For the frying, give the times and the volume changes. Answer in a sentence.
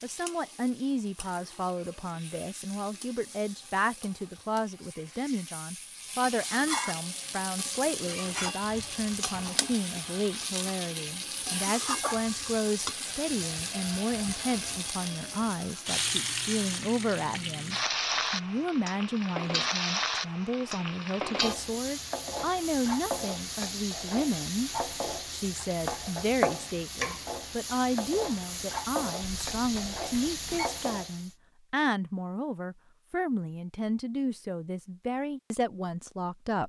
The frying can be heard from 0.0 to 31.4 s, getting louder.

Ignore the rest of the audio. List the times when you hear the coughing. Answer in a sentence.
The coughing can't be heard in this clip.